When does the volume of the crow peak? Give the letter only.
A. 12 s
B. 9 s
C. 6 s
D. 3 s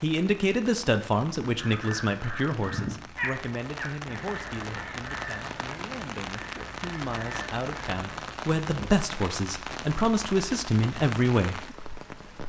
D.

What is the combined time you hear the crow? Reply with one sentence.
The crow can be heard for 7 seconds in total.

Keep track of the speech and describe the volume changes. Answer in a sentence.
The volume of the speech goes down, then up.